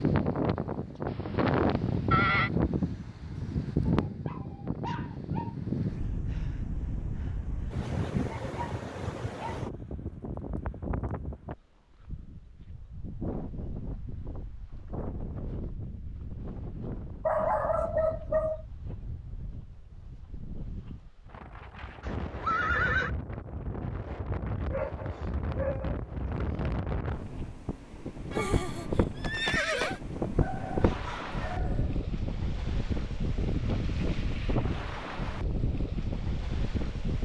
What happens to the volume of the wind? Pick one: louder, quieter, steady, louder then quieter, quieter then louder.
quieter then louder.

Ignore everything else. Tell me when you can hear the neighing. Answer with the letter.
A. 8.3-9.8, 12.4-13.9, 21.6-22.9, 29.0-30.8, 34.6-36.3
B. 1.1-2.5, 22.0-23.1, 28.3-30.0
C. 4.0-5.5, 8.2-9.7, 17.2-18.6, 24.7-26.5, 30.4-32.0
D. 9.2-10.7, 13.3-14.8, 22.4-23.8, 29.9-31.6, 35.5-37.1
B.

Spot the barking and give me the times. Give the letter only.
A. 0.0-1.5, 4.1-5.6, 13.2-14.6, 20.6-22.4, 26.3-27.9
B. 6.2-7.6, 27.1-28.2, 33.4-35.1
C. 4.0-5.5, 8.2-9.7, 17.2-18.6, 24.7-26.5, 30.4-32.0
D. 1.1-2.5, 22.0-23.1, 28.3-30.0
C.